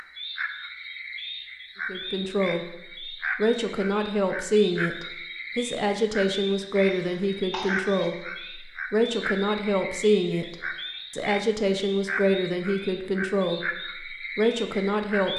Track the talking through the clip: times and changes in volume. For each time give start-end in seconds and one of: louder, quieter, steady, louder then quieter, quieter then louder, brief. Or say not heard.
1.9-15.3 steady.